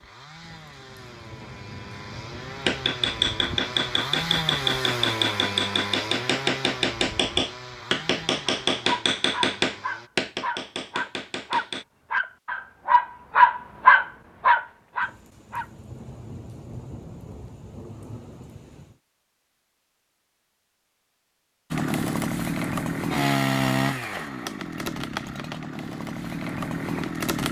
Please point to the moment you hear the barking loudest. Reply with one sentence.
The loudest moment of the barking is at 14 seconds.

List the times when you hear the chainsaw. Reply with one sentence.
The chainsaw can be heard from 0.0 to 10.1 s and from 21.7 to 27.4 s.